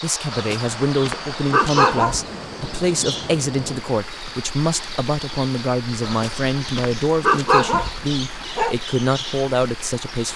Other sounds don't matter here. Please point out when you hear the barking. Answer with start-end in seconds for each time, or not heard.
0.3-2.2, 6.0-8.8.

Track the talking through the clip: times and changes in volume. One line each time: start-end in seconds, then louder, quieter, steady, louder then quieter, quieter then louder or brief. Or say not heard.
0.0-10.3 steady.